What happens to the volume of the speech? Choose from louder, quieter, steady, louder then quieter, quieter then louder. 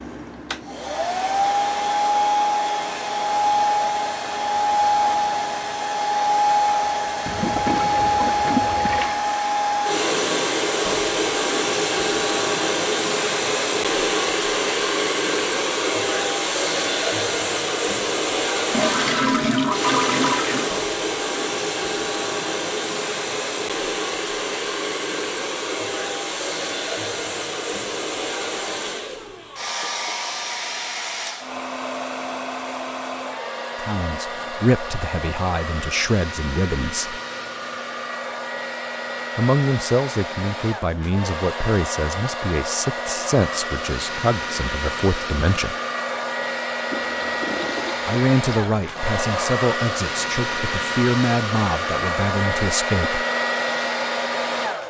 steady.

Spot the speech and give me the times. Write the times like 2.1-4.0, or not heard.
33.8-37.2, 39.4-45.8, 48.0-53.2.